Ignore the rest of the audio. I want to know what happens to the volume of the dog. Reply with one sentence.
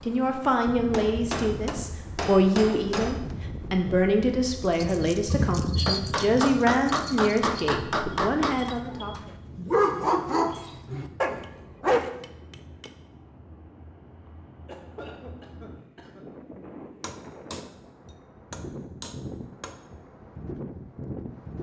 The loudness of the dog goes down, then up.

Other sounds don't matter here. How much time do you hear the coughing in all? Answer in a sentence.
The coughing can be heard for 2 seconds in total.